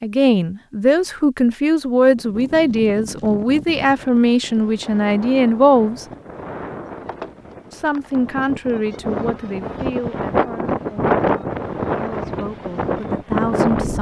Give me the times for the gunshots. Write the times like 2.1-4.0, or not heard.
not heard.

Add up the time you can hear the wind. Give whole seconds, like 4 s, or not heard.
12 s.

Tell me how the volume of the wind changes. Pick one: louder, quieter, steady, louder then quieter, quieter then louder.
louder.